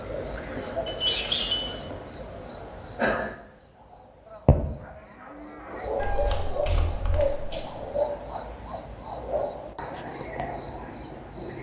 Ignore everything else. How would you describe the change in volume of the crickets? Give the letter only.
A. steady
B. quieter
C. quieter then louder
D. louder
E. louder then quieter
A.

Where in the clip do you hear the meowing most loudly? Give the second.
1 s.